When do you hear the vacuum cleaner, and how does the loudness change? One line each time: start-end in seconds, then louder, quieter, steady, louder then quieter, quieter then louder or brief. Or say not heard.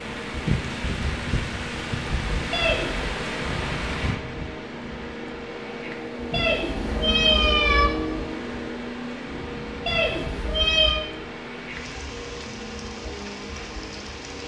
0.0-14.4 louder then quieter.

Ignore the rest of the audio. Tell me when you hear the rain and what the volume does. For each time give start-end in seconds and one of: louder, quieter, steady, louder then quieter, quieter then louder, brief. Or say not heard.
0.0-14.4 quieter.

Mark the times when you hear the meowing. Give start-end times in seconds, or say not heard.
2.5-3.1, 6.3-7.9, 9.8-11.0.